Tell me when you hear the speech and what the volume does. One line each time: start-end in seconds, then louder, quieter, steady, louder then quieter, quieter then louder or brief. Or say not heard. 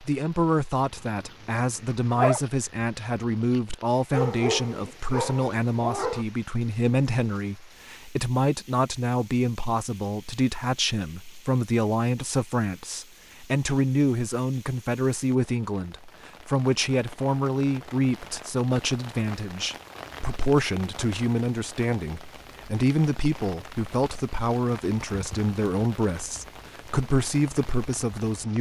0.0-28.5 steady.